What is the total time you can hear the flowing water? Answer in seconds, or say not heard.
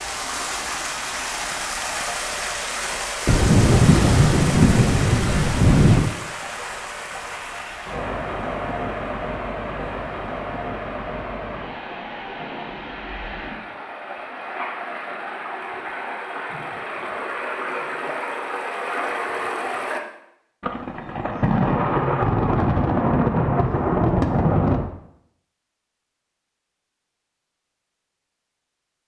20 s.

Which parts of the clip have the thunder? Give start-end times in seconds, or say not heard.
3.2-6.1, 20.6-24.9.